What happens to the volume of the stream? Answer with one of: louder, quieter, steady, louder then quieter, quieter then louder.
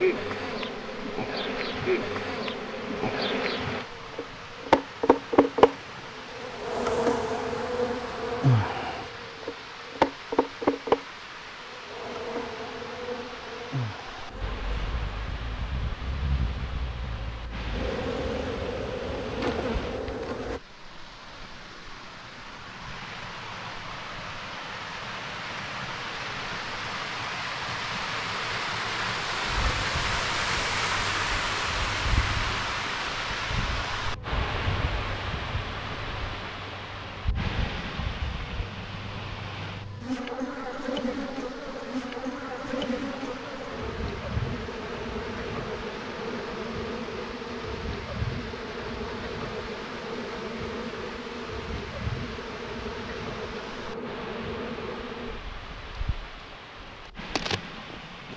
louder then quieter.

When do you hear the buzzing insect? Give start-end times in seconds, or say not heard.
0.0-20.6, 29.4-58.3.